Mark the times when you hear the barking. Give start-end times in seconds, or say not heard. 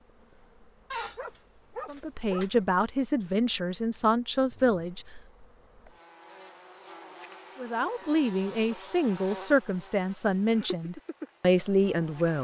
0.9-2.6.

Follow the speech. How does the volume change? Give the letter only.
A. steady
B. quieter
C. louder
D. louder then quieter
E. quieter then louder
A.